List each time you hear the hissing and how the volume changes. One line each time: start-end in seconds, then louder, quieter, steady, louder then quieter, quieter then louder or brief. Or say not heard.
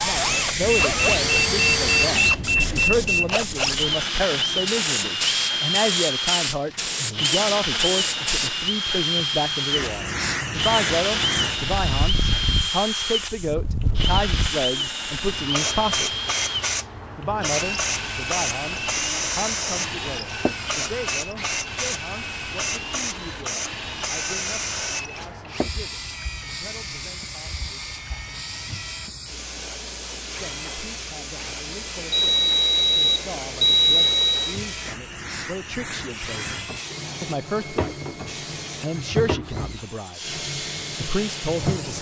0.0-41.9 quieter.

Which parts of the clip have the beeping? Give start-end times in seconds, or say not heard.
0.6-3.4, 32.1-34.6.